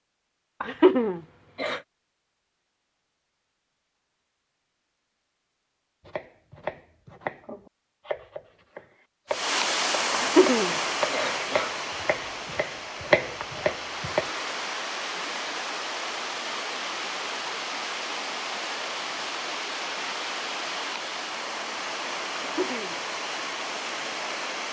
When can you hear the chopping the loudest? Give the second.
13 s.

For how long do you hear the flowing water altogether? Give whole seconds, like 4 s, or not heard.
15 s.